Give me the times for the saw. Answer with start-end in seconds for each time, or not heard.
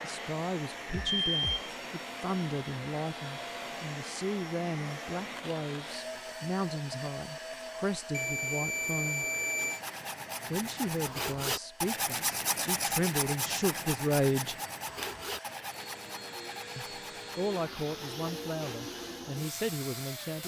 9.4-19.2.